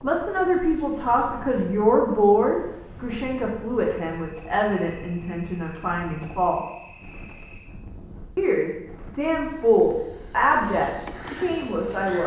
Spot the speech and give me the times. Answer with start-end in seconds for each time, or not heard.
0.0-6.6, 8.3-12.2.